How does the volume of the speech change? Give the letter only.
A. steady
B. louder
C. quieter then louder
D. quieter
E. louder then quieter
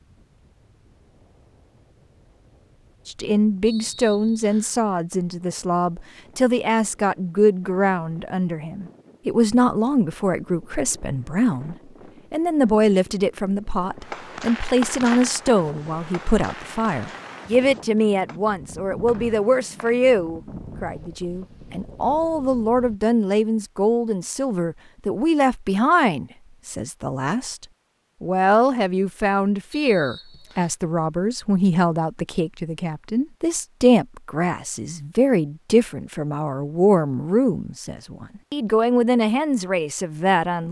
A.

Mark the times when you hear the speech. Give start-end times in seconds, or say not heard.
3.0-40.6.